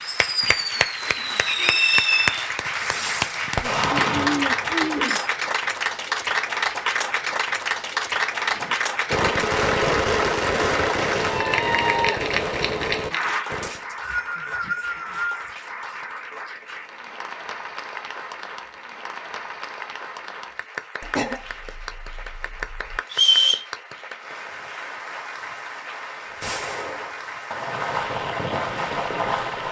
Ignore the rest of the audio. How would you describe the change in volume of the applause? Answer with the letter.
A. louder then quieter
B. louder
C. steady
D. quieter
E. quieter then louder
D.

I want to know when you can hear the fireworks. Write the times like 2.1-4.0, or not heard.
0.0-5.3, 8.5-13.8, 26.3-29.6.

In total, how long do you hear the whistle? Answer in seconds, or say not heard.
3 s.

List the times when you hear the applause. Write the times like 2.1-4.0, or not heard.
0.0-29.6.